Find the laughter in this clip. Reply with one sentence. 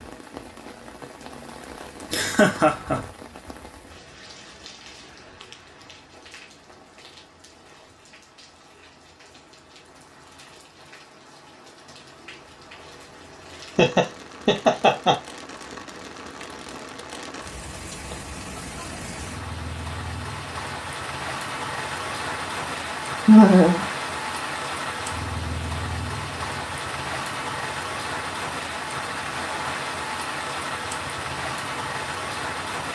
You can hear the laughter from 2.1 to 3.0 s, from 13.8 to 15.2 s and from 23.2 to 23.9 s.